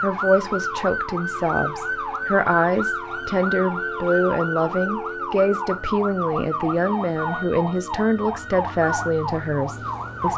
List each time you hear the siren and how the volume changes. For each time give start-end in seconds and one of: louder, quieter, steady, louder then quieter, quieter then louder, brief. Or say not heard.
0.0-10.3 steady.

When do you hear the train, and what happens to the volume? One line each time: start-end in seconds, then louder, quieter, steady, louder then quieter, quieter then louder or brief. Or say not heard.
not heard.